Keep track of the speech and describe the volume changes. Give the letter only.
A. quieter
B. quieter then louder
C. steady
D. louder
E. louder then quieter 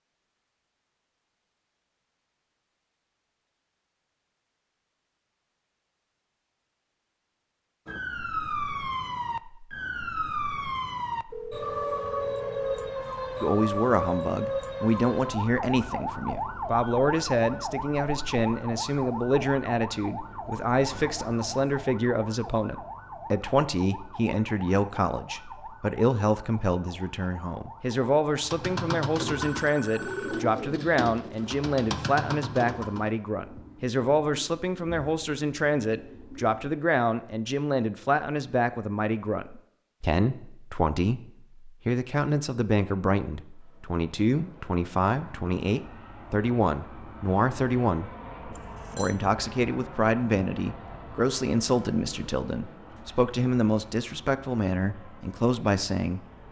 C.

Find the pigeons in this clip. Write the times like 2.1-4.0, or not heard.
28.4-36.6.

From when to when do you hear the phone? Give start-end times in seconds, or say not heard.
11.3-12.9, 29.3-30.4, 48.5-49.1.